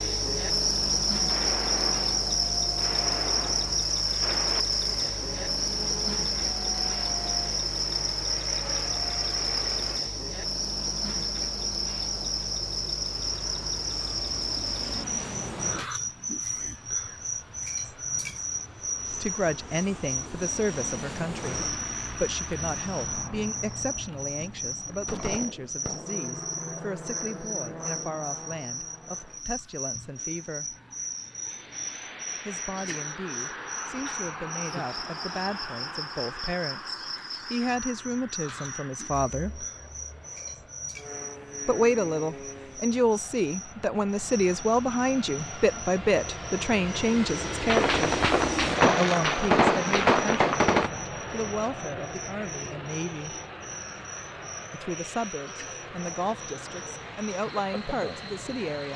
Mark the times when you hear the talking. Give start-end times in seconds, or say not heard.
19.1-30.8, 32.5-39.6, 41.6-48.0, 49.0-53.4, 54.7-58.9.